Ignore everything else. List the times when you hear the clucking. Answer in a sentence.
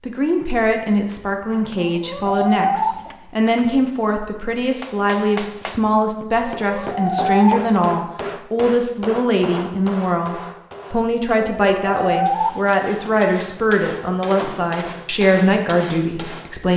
You can hear the clucking from 1.7 to 3.6 s, from 6.6 to 7.8 s and from 11.4 to 13.2 s.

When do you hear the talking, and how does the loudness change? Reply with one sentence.
The talking can be heard from 0.0 to 16.7 s, at a steady volume.